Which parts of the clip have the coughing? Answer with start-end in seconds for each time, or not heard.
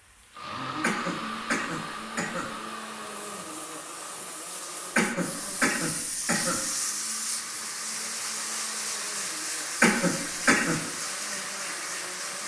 0.8-2.5, 5.0-6.7, 9.8-10.8.